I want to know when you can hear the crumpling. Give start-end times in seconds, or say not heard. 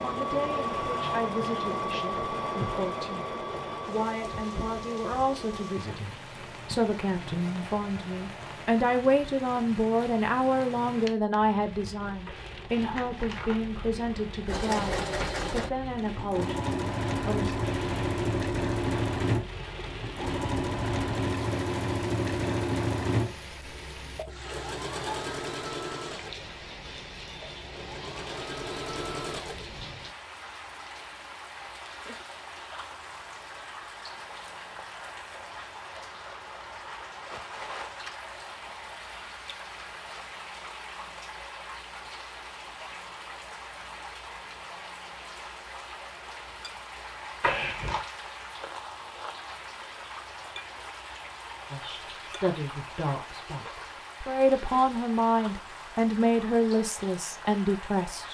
12.2-13.6, 47.4-48.0.